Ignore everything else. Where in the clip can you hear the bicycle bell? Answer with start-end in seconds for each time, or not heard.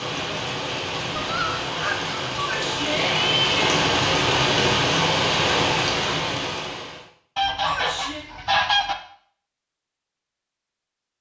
not heard.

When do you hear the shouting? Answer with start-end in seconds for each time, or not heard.
2.4-3.6, 7.6-8.2.